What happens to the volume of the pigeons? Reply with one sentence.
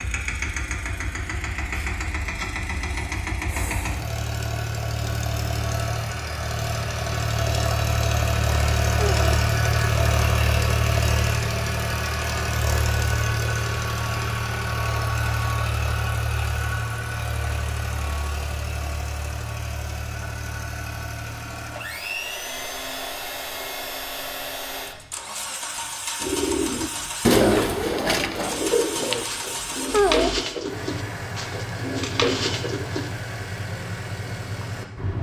The volume of the pigeons goes down.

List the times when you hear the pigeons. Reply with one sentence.
The pigeons can be heard from 26.2 to 33.1 s.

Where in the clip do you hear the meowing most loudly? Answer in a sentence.
The volume of the meowing peaks at 30 seconds.